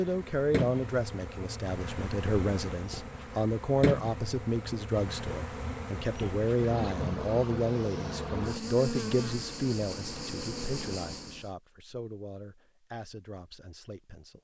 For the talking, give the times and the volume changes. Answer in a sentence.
The talking can be heard from 0.0 to 14.3 s, getting quieter.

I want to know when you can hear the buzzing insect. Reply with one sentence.
You can hear the buzzing insect from 0.0 to 11.5 s.